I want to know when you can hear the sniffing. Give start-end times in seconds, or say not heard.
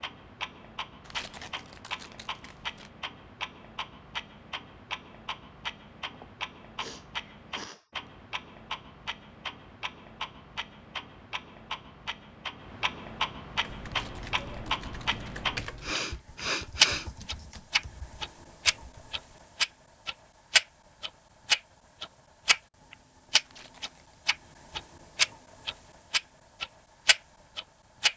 6.1-7.8, 15.3-17.1.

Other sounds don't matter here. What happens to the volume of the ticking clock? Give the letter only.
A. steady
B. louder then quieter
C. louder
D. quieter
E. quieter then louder
C.